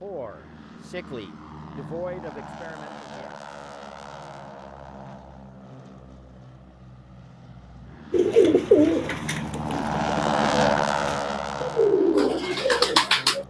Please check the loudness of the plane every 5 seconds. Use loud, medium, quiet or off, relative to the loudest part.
quiet, medium, loud.